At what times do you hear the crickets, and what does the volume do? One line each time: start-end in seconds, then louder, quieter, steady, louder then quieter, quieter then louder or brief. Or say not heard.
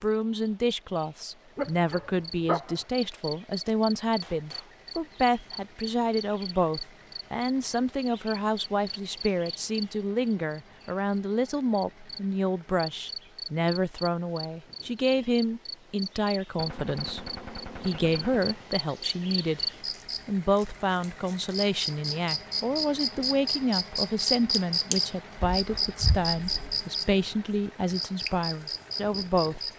0.0-29.7 louder.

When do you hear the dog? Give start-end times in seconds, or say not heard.
1.6-2.8, 25.4-26.8.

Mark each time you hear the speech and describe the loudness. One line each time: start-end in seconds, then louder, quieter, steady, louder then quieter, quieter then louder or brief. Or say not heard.
0.0-19.6 steady
20.2-29.7 steady.